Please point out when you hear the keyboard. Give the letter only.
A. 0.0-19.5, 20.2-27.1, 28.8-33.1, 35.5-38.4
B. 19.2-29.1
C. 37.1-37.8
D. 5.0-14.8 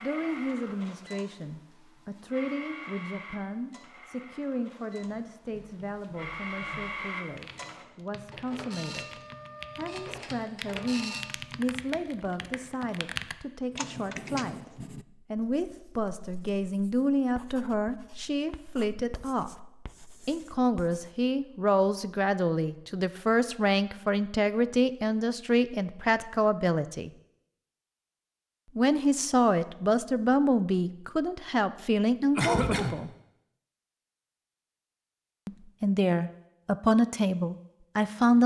D.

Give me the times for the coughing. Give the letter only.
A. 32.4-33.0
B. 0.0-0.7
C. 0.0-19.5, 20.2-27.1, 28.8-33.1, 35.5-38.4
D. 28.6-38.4
A.